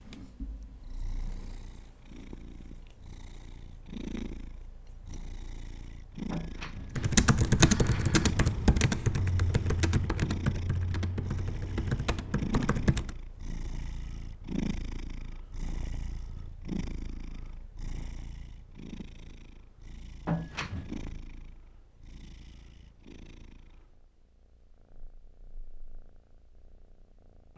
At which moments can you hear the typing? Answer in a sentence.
The typing can be heard from 6.9 to 13.2 s.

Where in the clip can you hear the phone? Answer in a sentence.
The phone can be heard from 6.3 to 8.3 s and from 20.2 to 20.9 s.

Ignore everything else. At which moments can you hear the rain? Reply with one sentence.
You can't hear the rain here.